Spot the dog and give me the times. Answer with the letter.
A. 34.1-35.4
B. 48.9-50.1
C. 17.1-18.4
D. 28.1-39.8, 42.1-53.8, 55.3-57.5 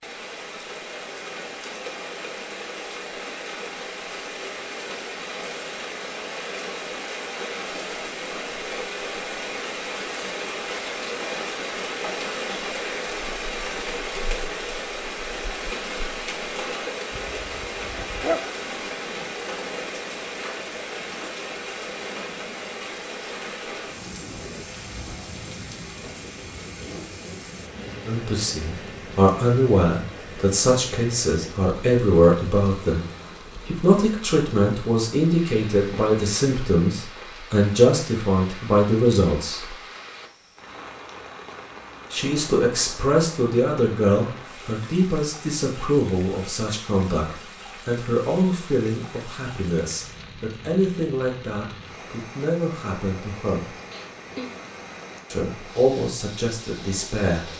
C.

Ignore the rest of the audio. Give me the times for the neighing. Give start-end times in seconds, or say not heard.
53.9-54.5.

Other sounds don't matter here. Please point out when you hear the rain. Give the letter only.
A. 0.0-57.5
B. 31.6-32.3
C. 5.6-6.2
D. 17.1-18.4
A.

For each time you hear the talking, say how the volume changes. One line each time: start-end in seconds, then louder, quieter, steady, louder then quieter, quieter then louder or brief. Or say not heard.
28.1-39.8 steady
42.1-53.8 quieter
55.3-57.5 brief.